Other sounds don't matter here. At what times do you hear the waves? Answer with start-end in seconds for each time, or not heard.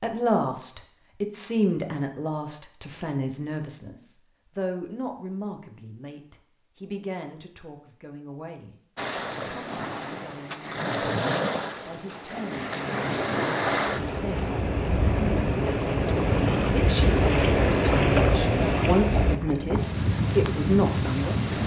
8.9-21.6.